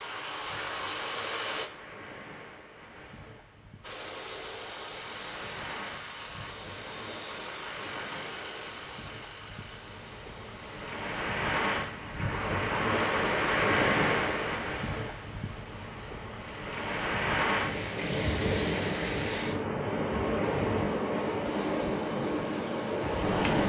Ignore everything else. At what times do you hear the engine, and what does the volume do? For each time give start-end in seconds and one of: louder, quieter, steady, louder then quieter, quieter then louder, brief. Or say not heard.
0.0-1.7 brief
3.8-12.3 quieter.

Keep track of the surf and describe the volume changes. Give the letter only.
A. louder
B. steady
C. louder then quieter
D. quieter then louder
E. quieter
A.